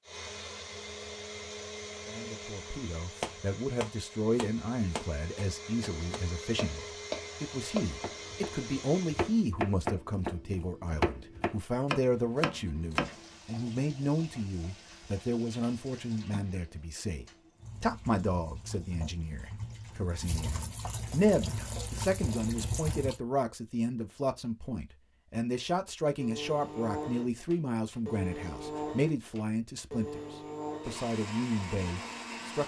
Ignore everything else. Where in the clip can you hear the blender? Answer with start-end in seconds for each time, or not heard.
0.0-9.5, 26.1-32.6.